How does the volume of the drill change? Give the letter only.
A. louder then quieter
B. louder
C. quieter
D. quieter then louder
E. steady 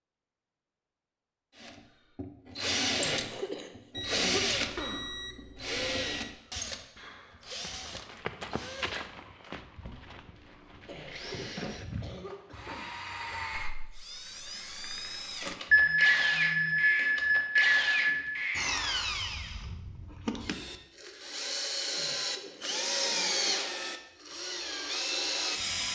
D.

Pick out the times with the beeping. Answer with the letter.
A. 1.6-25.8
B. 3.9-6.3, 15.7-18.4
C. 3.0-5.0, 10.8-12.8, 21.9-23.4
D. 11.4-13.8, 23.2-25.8
B.